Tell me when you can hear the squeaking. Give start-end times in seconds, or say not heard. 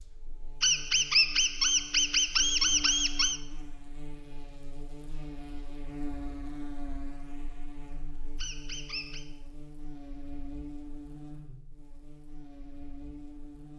0.6-3.4, 8.3-9.2.